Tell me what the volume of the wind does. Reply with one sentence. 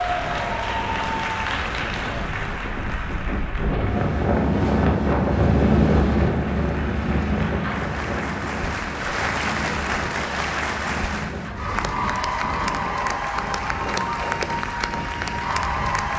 The volume of the wind goes up, then down.